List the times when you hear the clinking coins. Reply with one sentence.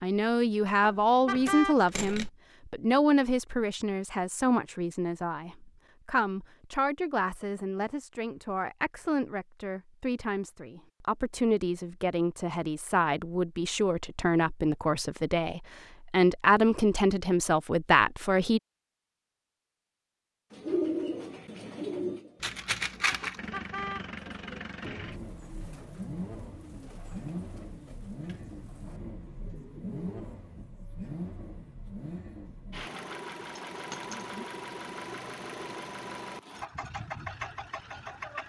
You can hear the clinking coins from 1.4 to 2.3 s, from 22.4 to 23.4 s and from 33.5 to 34.1 s.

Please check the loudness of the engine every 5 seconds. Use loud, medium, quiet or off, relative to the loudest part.
off, off, off, off, loud, loud, loud, loud.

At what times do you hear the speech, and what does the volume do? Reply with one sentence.
The speech can be heard from 0.0 to 18.6 s, getting quieter then louder.